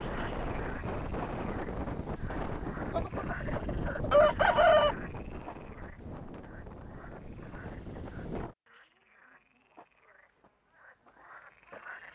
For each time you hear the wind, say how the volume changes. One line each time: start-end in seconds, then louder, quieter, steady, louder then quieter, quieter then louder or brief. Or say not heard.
0.0-8.6 quieter.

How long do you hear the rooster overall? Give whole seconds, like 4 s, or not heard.
2 s.